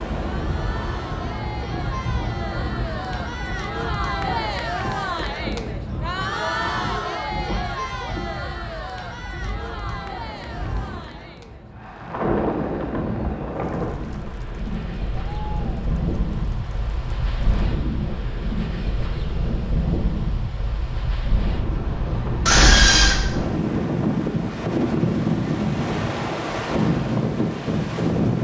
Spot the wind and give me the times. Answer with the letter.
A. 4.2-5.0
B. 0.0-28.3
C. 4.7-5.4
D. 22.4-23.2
B.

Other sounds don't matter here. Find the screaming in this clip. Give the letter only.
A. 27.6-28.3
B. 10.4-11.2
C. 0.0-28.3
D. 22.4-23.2
D.